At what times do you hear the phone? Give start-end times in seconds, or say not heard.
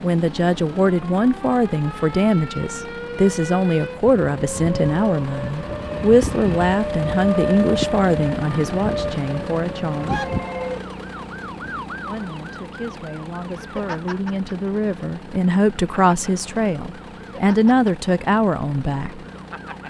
9.9-10.8.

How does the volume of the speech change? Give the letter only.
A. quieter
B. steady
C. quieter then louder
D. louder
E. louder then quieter
C.